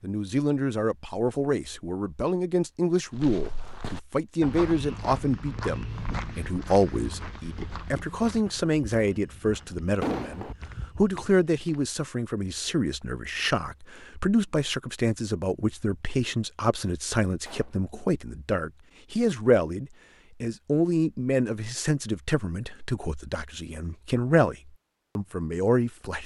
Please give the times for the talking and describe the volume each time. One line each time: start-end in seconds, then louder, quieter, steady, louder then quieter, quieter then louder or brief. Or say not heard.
0.0-26.2 steady.